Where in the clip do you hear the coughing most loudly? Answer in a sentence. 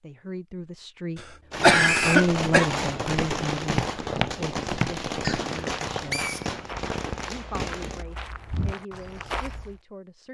The volume of the coughing peaks at 2 seconds.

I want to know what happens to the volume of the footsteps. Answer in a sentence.
The loudness of the footsteps goes down, then up.